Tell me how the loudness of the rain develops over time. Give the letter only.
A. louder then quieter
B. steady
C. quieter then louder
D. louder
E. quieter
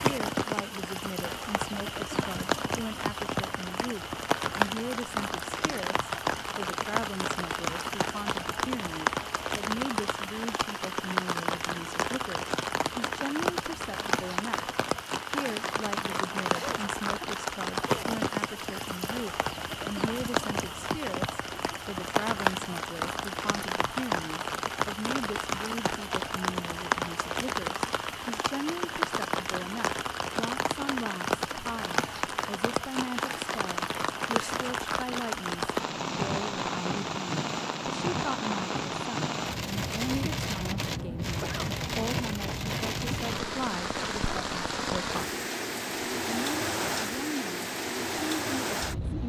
B.